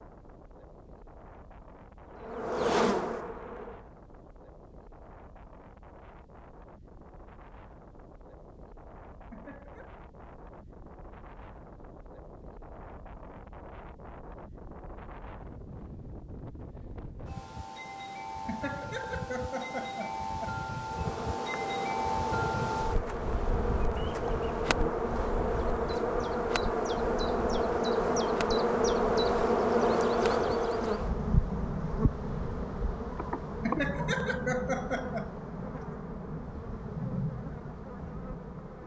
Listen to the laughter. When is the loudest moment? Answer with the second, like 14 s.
35 s.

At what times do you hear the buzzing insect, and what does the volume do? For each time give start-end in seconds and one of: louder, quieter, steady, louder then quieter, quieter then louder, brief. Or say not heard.
2.0-3.9 brief
20.9-38.8 louder then quieter.